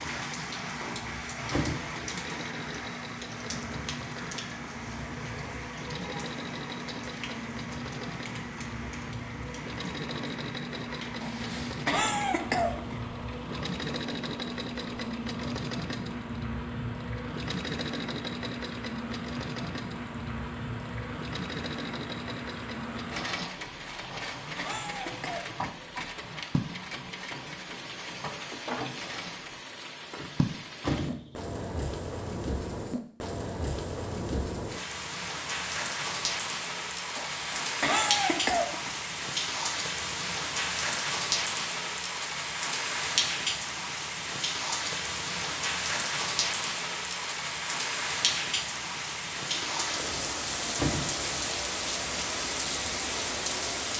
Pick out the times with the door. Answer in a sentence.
The door can be heard from 0.8 to 2.0 s, from 30.1 to 31.6 s and from 50.0 to 51.5 s.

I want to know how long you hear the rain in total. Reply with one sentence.
The rain can be heard for 54 seconds in total.